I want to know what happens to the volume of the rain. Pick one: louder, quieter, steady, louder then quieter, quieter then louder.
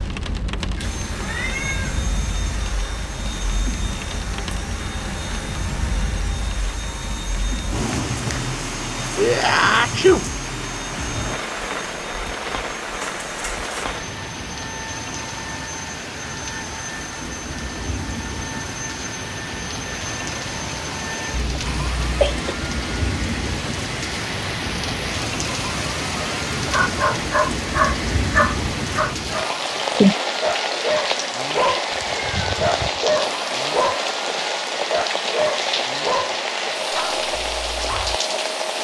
louder.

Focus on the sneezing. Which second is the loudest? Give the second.
10 s.